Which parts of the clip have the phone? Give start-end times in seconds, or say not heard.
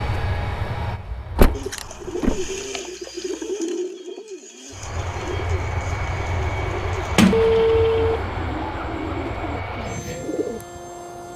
2.2-3.2, 7.3-8.2.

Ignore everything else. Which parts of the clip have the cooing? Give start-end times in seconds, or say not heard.
1.5-10.6.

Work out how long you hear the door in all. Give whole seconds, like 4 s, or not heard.
2 s.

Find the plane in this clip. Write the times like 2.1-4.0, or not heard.
0.0-1.8, 4.7-11.3.